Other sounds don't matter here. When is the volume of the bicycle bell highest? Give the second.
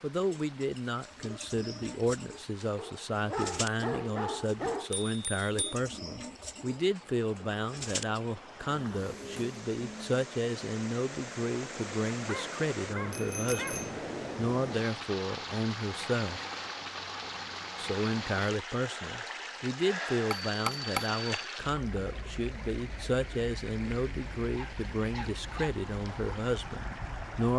21 s.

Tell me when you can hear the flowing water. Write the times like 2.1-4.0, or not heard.
0.0-27.5.